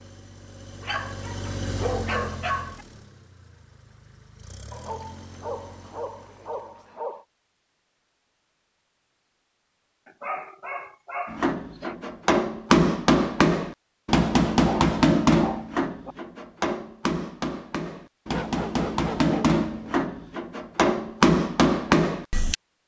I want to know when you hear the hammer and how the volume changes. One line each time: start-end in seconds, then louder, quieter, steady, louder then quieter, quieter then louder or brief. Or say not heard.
11.3-22.6 quieter then louder.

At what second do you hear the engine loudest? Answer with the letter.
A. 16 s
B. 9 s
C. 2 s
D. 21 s
C.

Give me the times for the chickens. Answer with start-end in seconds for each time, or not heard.
not heard.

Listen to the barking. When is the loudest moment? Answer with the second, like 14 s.
2 s.